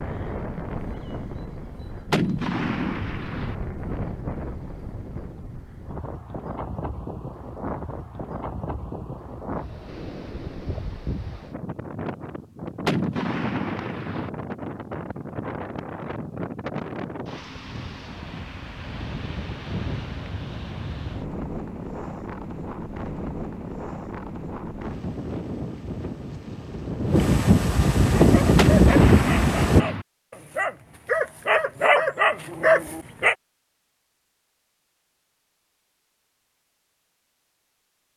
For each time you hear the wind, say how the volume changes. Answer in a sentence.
You can hear the wind from 0.0 to 29.9 s, getting louder.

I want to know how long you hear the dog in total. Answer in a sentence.
You can hear the dog for 5 seconds altogether.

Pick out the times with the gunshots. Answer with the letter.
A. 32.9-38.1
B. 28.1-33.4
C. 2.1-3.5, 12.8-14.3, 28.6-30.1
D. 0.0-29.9
C.